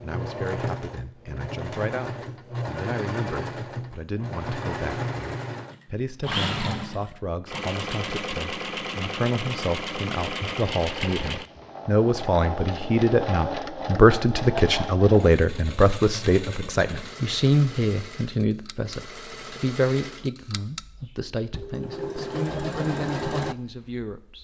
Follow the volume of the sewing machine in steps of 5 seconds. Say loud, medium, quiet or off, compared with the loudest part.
loud, loud, loud, medium, loud.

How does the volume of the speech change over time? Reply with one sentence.
The volume of the speech goes up, then down.